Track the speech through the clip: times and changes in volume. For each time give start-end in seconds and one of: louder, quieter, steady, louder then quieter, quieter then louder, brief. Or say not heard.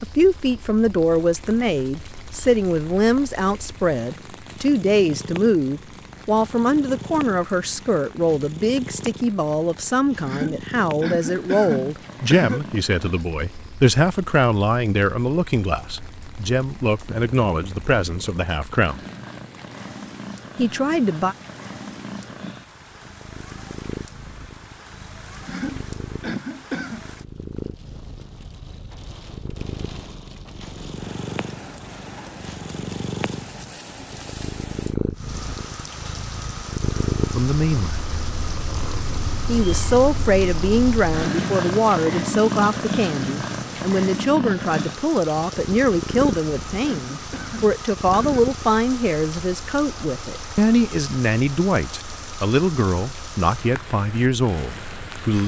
0.0-19.0 steady
20.6-21.4 brief
37.4-38.1 brief
39.5-55.4 steady.